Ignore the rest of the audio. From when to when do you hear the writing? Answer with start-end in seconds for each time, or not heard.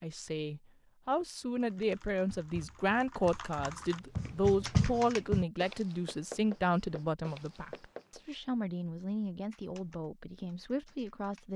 1.7-8.2.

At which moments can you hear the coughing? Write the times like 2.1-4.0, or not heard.
not heard.